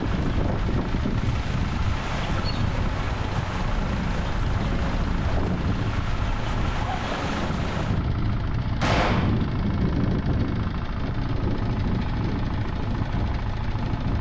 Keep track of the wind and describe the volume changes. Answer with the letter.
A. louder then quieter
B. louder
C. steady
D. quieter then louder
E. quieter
C.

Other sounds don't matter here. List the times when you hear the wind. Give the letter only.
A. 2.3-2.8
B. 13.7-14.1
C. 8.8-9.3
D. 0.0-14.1
D.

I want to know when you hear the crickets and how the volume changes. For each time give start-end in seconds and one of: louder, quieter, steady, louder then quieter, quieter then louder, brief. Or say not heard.
not heard.